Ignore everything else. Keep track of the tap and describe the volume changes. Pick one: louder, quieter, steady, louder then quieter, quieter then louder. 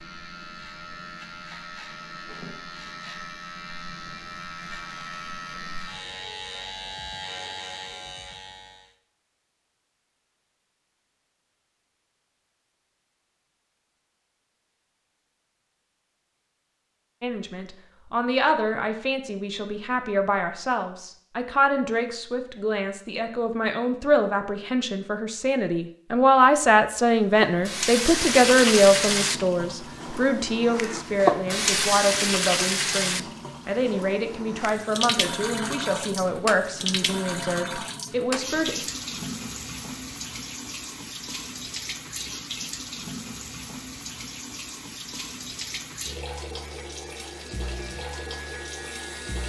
quieter.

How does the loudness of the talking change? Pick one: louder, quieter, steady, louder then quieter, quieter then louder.
louder then quieter.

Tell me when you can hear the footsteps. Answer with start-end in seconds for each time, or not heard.
not heard.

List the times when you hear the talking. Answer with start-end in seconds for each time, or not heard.
17.2-38.8.